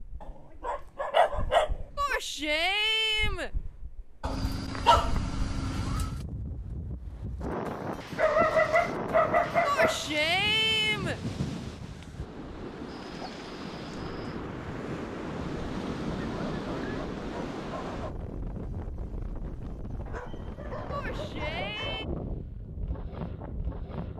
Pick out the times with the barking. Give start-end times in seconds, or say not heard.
0.6-2.2, 4.2-6.2, 8.2-10.1, 12.8-14.3, 16.1-18.1, 20.1-22.1.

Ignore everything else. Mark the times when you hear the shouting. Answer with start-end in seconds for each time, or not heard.
1.9-3.5, 9.7-11.2, 20.9-22.1.